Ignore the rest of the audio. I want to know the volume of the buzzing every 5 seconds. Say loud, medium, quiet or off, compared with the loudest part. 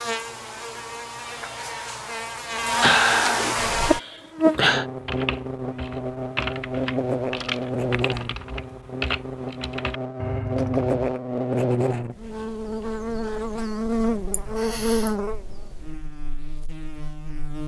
loud, loud, loud, medium.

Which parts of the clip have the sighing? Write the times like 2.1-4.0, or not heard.
2.8-4.8, 14.3-15.1.